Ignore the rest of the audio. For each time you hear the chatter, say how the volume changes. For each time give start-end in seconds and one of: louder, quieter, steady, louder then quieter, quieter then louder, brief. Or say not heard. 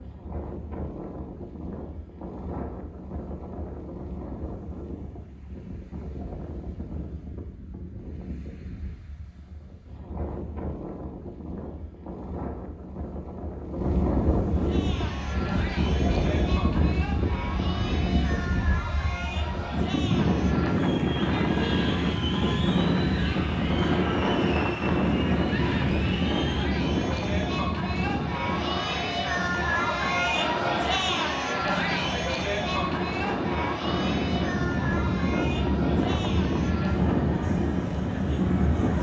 14.5-38.9 louder then quieter.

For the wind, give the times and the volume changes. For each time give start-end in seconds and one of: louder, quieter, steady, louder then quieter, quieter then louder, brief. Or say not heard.
0.0-38.9 louder.